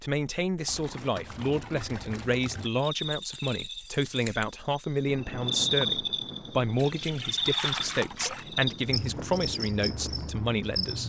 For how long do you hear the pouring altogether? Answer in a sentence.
You can hear the pouring for 4 seconds altogether.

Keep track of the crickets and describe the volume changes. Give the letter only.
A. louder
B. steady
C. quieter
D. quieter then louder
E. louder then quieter
E.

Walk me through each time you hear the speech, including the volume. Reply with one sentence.
The speech can be heard from 0.0 to 11.0 s, at a steady volume.